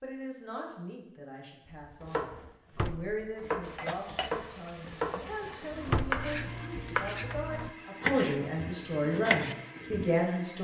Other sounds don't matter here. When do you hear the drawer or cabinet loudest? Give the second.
6 s.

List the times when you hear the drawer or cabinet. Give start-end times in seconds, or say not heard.
2.4-3.2, 5.5-6.2, 7.3-7.8.